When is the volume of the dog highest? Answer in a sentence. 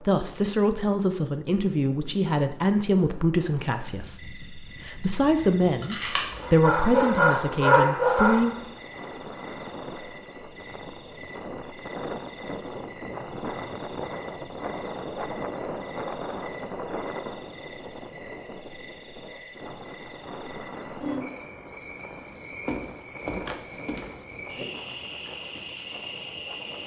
The loudest moment of the dog is at 8 seconds.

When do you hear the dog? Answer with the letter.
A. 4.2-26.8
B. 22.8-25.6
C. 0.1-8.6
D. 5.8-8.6
D.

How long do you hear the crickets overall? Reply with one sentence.
The crickets can be heard for 23 seconds in total.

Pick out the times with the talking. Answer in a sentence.
You can hear the talking from 0.1 to 8.6 s.